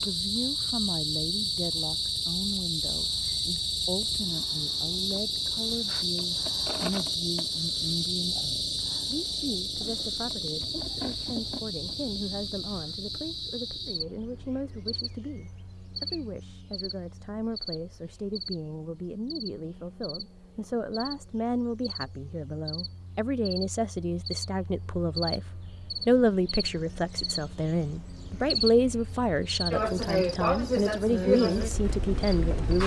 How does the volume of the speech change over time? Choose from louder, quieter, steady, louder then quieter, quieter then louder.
louder.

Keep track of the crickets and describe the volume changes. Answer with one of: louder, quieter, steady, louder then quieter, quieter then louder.
quieter then louder.